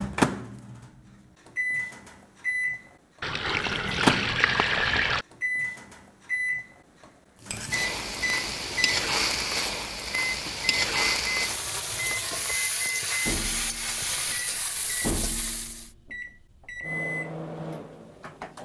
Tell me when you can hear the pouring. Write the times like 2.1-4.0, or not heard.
3.2-5.2.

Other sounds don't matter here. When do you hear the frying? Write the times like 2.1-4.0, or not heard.
7.4-15.9.